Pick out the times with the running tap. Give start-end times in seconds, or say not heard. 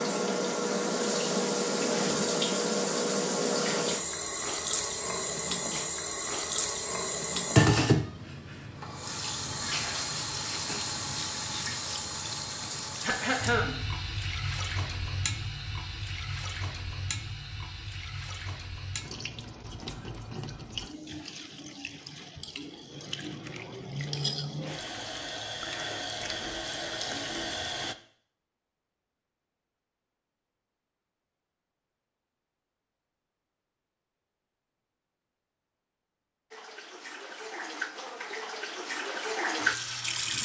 0.0-27.9, 36.5-40.4.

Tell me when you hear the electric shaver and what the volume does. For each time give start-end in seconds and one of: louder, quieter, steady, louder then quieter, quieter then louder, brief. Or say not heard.
not heard.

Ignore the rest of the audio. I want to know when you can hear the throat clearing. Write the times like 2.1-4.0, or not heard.
13.0-13.8.